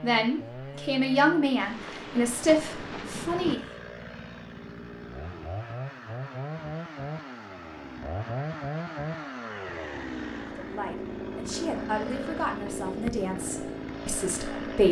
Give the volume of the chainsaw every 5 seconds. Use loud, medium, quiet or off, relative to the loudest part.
medium, loud, loud.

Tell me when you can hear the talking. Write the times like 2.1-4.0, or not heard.
0.0-3.6, 10.6-14.8.